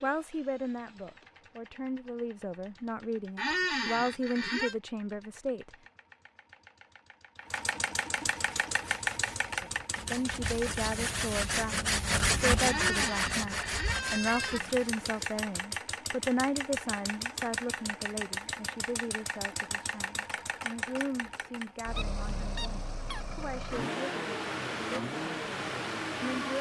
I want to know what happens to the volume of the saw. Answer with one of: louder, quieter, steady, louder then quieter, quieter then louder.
louder then quieter.